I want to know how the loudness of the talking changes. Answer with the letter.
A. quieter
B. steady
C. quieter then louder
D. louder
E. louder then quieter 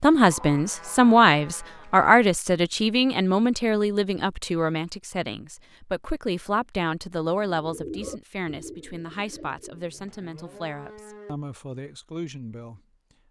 A.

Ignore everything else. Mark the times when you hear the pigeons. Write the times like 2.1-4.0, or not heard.
7.3-10.1.